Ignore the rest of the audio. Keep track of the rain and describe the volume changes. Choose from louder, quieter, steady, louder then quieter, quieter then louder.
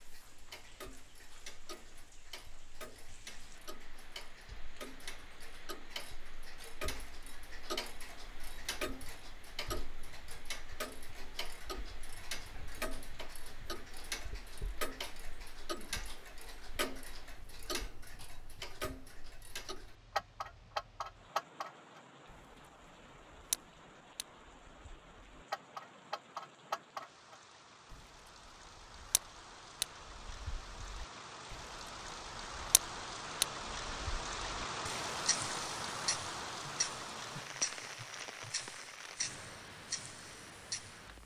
louder.